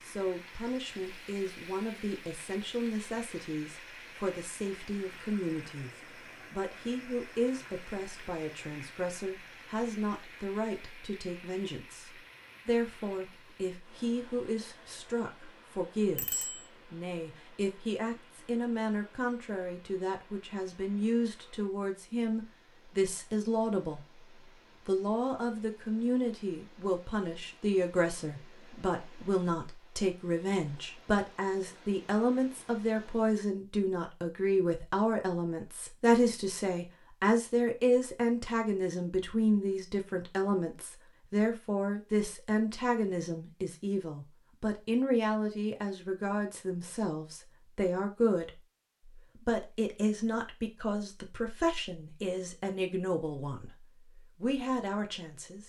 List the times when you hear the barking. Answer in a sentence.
The barking can't be heard in this clip.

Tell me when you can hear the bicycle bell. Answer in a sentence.
The bicycle bell can be heard from 16.1 to 16.6 s.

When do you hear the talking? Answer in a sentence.
The talking can be heard from 0.0 to 5.9 s, from 6.5 to 24.1 s and from 24.9 to 55.6 s.